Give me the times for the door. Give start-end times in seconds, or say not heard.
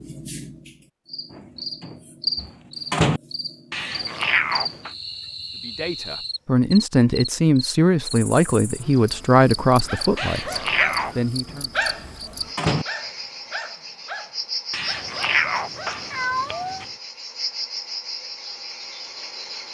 1.3-3.2, 11.0-12.8.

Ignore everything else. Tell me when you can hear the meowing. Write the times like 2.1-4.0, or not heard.
3.7-4.9, 10.2-11.2, 14.7-16.9.